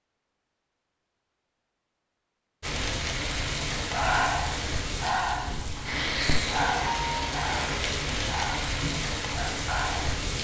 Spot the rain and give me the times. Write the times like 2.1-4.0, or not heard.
2.6-10.3.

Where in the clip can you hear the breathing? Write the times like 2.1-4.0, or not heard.
3.9-10.2.